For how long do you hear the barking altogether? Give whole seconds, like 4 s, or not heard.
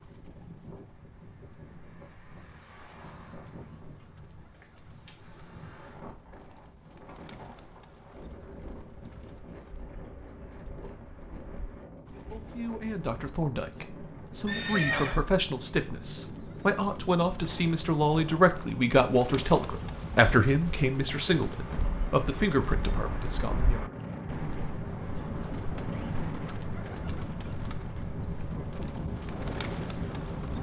not heard.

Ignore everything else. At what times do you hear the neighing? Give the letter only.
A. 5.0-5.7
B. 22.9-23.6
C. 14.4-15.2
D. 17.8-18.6
C.